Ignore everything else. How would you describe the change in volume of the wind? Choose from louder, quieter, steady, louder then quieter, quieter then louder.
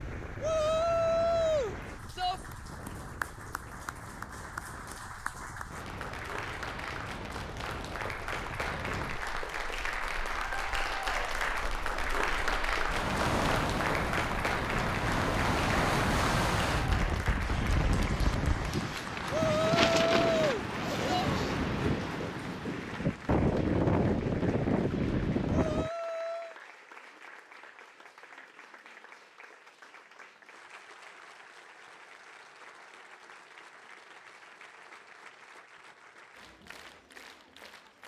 louder.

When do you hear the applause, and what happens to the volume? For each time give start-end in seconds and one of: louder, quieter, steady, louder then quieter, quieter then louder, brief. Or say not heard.
0.0-38.0 louder then quieter.